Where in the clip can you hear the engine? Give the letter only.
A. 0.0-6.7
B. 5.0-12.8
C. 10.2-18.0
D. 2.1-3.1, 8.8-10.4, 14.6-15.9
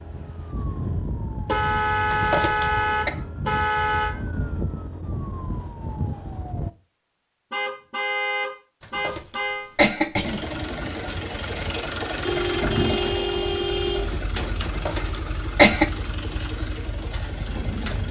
C.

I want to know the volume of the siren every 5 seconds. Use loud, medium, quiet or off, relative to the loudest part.
loud, loud, off, off.